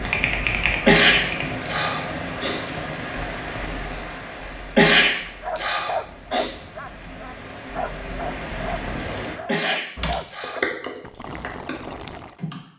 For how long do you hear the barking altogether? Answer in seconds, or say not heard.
7 s.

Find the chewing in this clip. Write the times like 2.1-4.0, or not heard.
not heard.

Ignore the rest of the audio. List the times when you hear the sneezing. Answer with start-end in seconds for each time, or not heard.
0.8-2.6, 4.8-6.5, 9.4-10.7.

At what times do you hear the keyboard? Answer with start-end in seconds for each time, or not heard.
0.0-1.5, 9.9-12.7.